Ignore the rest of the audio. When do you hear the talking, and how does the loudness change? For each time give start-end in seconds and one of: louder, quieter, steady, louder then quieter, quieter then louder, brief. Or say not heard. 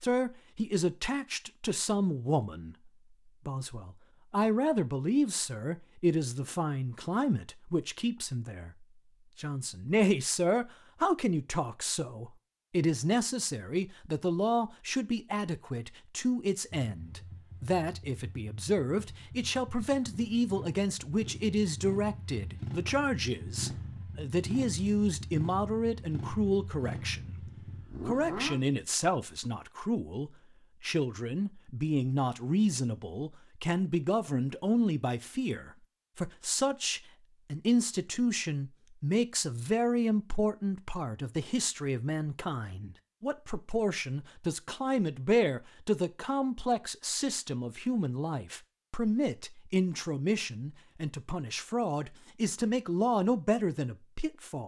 0.0-27.4 steady
28.0-54.6 steady.